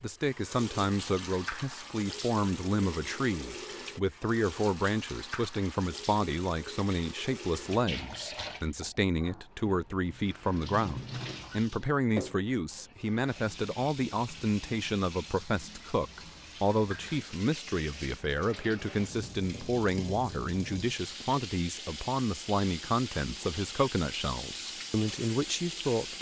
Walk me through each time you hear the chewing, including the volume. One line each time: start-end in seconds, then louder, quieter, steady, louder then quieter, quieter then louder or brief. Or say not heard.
not heard.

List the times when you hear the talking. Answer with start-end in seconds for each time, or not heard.
0.0-26.1.